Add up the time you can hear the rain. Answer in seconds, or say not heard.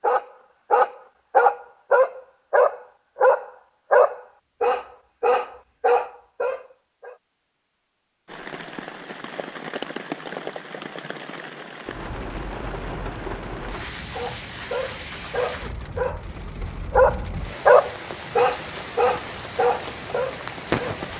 13 s.